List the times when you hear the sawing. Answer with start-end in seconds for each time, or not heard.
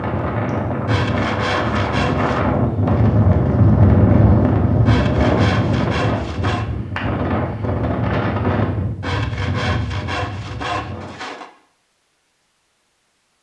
0.8-2.5, 4.8-6.7, 9.0-11.5.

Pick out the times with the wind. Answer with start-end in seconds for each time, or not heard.
0.0-11.2.